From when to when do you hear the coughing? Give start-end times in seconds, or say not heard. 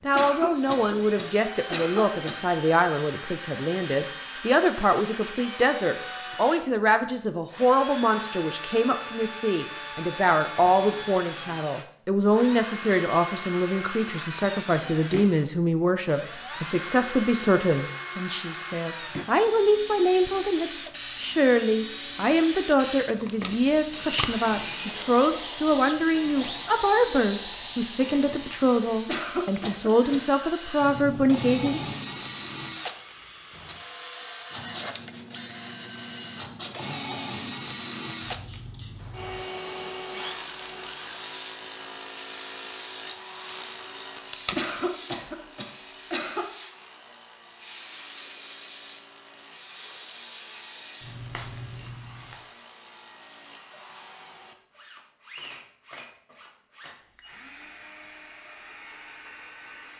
0.1-2.4, 29.1-30.2, 44.5-46.5.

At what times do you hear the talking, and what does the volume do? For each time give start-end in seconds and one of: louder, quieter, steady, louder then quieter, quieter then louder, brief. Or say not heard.
0.1-31.8 steady.